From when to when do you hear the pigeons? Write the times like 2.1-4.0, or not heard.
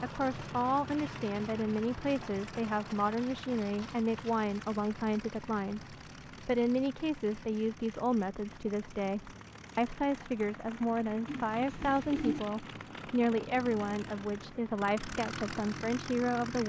11.2-12.4.